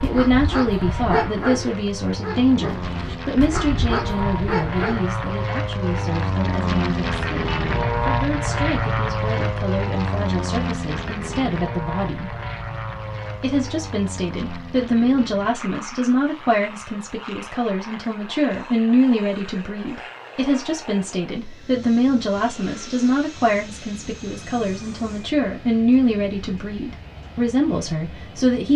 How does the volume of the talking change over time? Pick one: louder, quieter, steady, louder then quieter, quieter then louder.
quieter then louder.